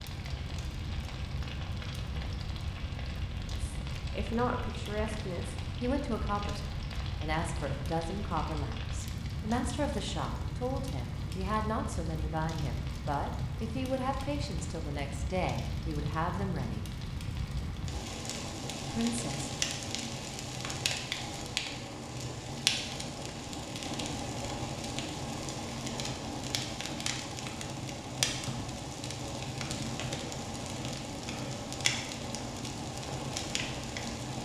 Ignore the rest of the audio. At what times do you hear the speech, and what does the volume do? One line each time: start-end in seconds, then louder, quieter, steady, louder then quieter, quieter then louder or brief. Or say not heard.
3.5-16.9 steady
18.9-19.5 brief.